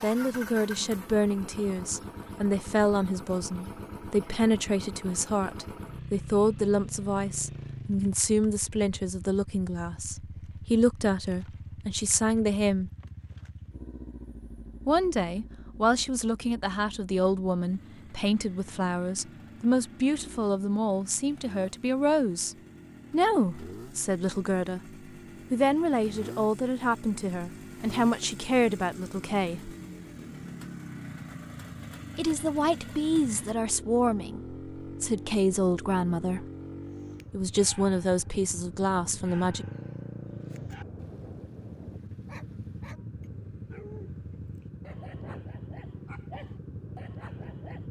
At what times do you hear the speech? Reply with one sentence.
You can hear the speech from 0.0 to 12.9 s, from 14.8 to 24.9 s, from 25.5 to 29.8 s, from 32.1 to 36.5 s and from 37.3 to 39.6 s.